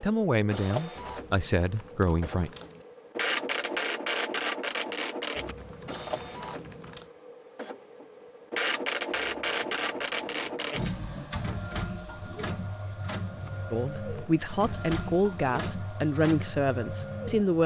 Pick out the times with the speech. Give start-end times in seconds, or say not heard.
0.0-2.5, 13.7-17.6.